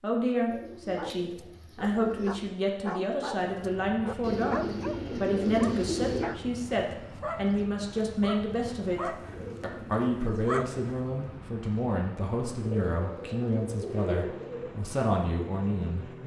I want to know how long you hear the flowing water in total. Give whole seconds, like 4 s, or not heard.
not heard.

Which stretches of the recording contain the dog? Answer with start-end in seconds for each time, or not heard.
0.8-11.1.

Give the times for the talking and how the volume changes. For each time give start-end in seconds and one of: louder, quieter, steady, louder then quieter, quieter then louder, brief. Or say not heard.
0.0-16.2 steady.